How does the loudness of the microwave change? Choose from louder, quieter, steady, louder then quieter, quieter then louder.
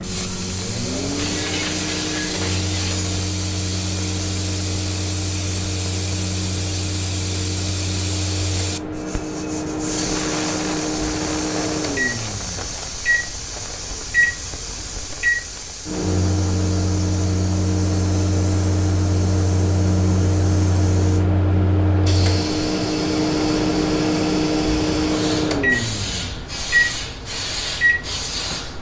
louder.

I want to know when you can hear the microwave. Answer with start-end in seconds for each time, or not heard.
0.0-28.7.